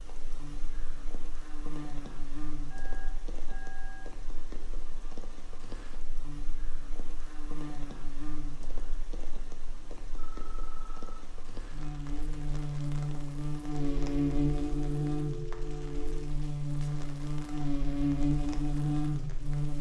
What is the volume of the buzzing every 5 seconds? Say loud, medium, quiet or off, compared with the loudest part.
quiet, quiet, loud, loud.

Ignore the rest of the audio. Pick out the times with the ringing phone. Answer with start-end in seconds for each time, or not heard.
2.7-4.1, 10.2-11.2, 13.7-16.3.